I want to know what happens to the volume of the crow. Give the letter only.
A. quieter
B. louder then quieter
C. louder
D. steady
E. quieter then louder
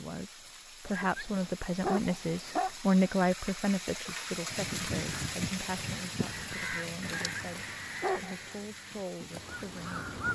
A.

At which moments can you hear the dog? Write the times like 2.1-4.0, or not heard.
0.8-2.7, 7.0-8.6.